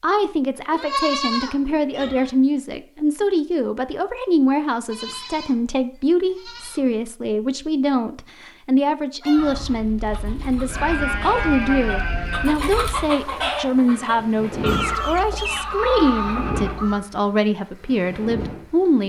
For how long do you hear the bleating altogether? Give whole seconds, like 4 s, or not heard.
8 s.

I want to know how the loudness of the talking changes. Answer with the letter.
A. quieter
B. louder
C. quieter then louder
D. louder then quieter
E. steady
E.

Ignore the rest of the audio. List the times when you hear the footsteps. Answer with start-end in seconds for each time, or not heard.
not heard.